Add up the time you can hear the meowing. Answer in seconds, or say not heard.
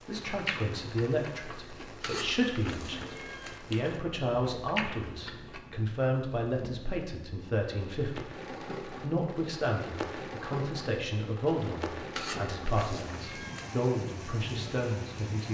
3 s.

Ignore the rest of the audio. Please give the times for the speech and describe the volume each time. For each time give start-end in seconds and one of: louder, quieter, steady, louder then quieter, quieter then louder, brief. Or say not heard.
0.1-15.4 steady.